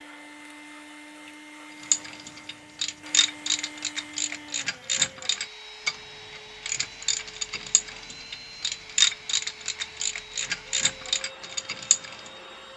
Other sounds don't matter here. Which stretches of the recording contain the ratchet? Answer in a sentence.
You can hear the ratchet from 1.8 to 12.3 s.